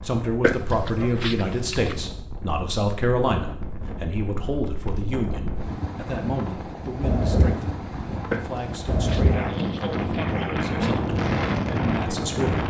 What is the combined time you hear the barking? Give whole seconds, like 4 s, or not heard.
4 s.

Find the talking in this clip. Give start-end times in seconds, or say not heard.
0.0-12.6.